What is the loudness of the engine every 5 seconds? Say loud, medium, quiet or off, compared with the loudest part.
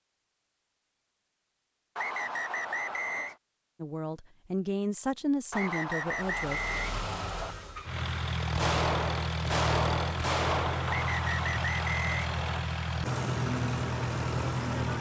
off, loud, loud.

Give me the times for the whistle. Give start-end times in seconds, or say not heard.
1.9-3.4, 5.5-7.5, 10.8-12.7.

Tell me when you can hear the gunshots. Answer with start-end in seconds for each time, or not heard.
8.6-11.1.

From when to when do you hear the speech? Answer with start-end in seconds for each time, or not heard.
3.8-6.6.